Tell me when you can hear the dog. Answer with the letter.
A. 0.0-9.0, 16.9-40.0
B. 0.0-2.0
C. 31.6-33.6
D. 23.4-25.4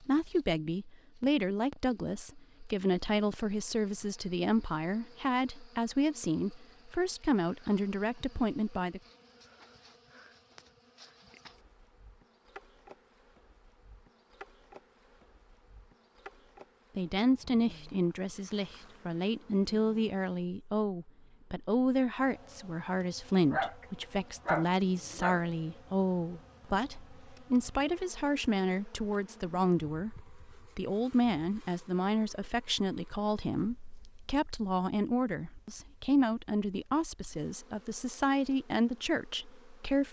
D.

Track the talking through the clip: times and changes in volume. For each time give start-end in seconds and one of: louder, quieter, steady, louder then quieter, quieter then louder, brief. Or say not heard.
0.0-9.0 steady
16.9-40.0 steady.